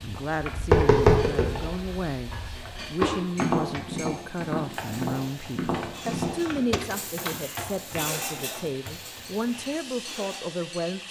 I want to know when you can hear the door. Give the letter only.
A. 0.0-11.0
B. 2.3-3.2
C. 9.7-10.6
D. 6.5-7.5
D.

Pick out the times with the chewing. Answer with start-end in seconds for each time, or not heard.
not heard.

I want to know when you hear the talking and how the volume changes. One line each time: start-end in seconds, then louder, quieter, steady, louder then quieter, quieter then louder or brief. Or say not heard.
0.0-11.0 steady.